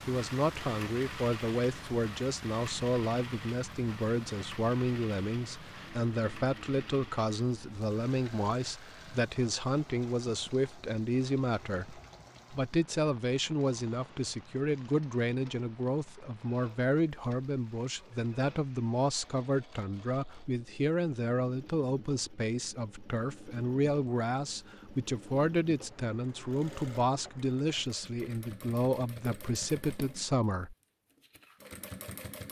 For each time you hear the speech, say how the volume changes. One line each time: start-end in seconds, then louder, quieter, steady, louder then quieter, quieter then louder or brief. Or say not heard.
0.1-30.8 steady.